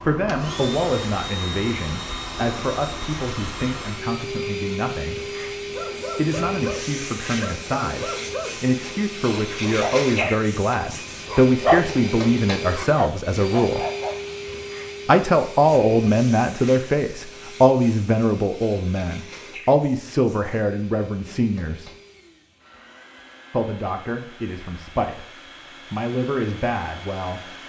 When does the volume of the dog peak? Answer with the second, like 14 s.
12 s.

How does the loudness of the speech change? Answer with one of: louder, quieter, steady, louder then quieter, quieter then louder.
louder then quieter.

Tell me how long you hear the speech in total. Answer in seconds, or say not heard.
24 s.